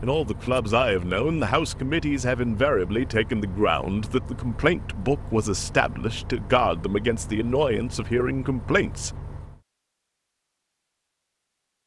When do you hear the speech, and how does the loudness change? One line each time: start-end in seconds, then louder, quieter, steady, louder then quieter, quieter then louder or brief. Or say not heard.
0.0-9.1 steady.